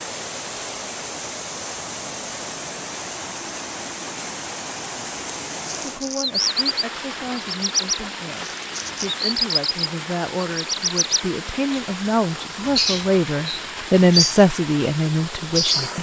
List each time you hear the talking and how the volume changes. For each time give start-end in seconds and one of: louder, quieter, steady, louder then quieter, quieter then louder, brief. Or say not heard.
5.8-15.9 louder.